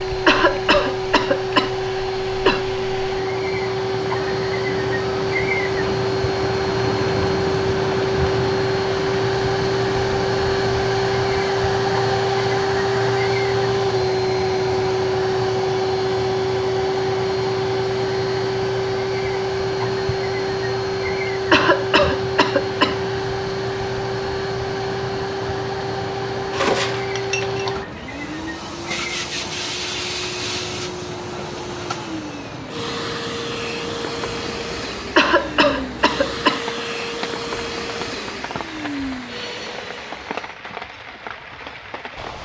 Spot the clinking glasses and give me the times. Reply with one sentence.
The clinking glasses can be heard from 26.5 to 27.7 s.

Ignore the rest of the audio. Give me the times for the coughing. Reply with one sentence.
The coughing can be heard from 0.0 to 2.6 s, from 21.5 to 23.1 s and from 35.1 to 36.8 s.